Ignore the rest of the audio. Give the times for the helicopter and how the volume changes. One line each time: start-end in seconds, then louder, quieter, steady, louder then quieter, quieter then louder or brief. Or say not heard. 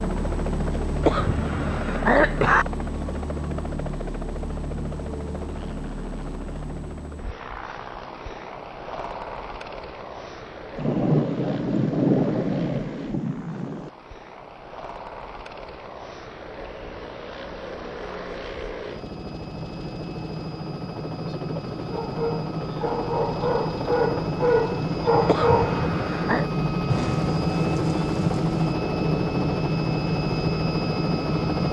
0.0-31.6 quieter then louder.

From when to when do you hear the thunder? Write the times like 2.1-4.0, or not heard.
10.8-13.9, 26.9-28.8.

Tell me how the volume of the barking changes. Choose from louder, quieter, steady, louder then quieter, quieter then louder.
louder.